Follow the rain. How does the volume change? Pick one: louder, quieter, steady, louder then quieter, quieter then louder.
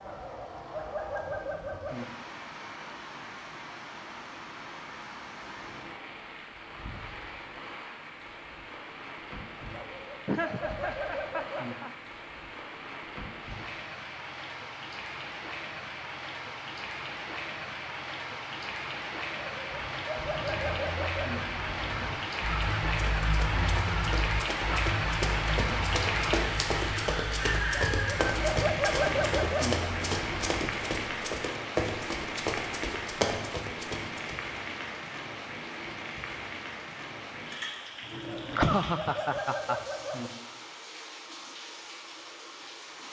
louder then quieter.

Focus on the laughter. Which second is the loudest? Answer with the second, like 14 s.
39 s.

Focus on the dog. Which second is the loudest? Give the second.
29 s.